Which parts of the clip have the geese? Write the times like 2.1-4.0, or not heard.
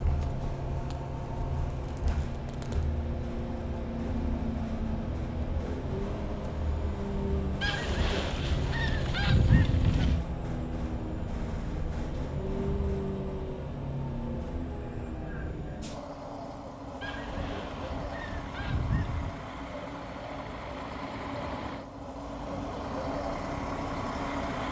7.6-10.2, 17.0-19.4.